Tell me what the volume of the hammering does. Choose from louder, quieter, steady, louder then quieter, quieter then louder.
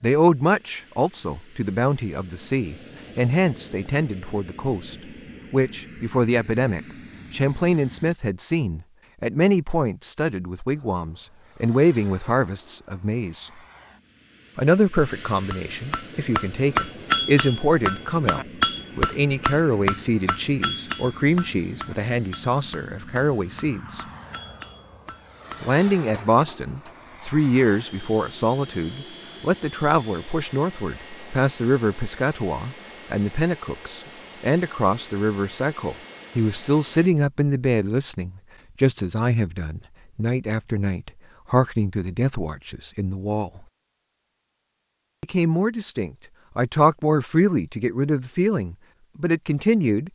quieter.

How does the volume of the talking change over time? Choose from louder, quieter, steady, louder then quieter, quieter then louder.
steady.